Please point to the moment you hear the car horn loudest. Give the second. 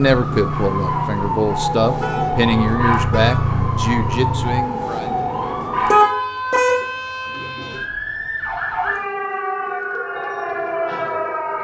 6 s.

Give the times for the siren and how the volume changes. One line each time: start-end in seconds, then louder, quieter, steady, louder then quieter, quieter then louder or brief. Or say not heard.
0.0-11.5 steady.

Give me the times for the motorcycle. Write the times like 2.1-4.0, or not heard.
0.1-4.6.